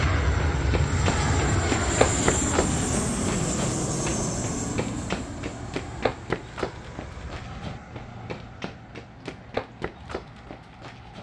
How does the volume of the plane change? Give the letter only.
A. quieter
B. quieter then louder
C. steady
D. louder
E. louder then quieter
A.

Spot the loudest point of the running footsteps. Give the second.
2 s.